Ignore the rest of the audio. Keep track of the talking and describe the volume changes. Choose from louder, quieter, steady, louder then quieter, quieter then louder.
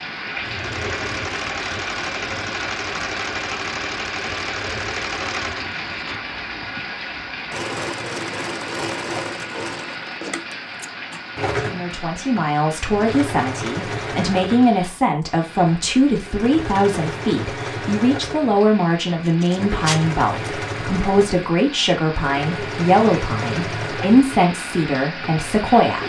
steady.